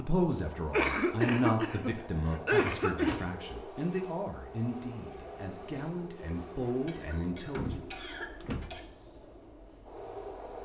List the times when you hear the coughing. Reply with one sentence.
The coughing can be heard from 0.7 to 3.2 s and from 6.8 to 8.8 s.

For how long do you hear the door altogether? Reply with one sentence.
You can hear the door for 3 seconds altogether.